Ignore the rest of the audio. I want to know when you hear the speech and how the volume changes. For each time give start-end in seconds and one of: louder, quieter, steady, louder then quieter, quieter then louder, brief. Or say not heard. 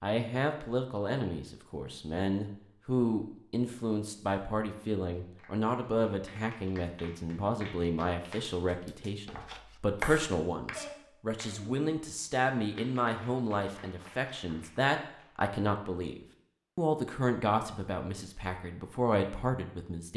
0.0-20.1 steady.